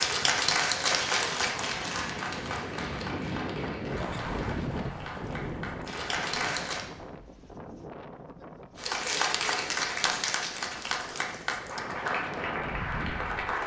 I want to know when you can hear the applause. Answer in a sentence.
You can hear the applause from 0.0 to 6.9 s and from 8.8 to 13.6 s.